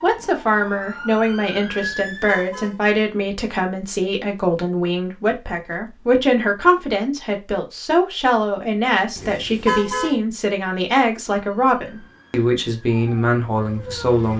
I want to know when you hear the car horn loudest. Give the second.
10 s.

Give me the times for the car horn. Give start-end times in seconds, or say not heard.
1.8-2.8, 9.2-10.2.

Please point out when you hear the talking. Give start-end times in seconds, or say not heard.
0.0-14.3.